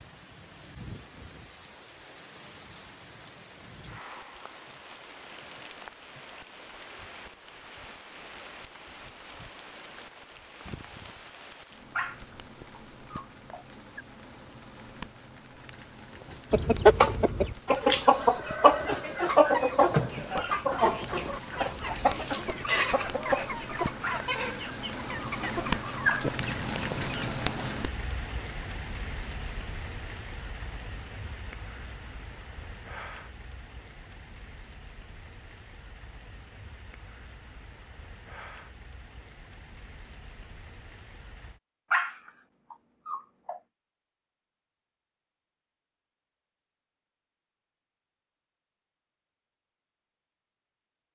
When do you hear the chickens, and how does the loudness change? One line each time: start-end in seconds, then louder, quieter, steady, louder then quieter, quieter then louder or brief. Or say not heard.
16.2-27.8 quieter.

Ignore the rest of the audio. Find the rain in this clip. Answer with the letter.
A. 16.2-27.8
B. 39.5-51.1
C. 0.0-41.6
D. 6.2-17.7
C.